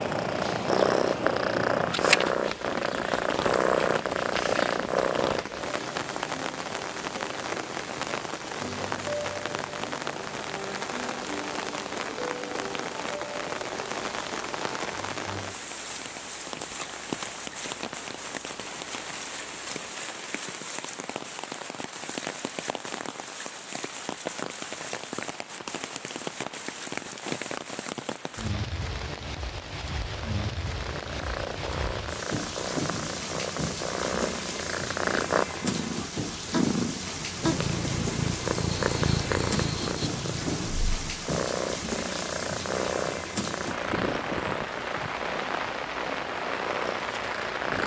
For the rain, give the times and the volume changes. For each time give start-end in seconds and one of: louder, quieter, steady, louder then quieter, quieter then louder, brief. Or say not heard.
0.0-47.8 steady.